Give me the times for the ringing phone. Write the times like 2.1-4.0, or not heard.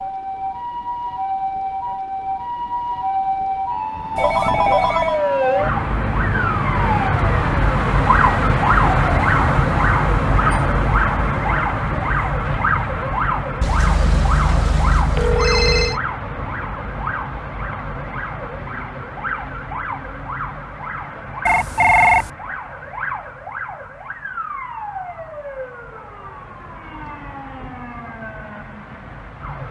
4.2-5.2, 13.6-16.0, 21.4-22.3.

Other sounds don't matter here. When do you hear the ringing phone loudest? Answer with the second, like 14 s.
22 s.